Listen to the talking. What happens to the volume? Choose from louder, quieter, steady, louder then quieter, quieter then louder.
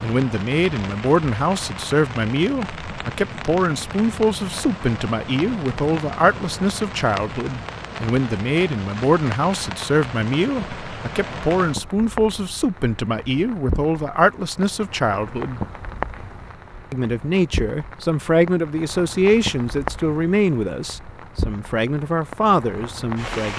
steady.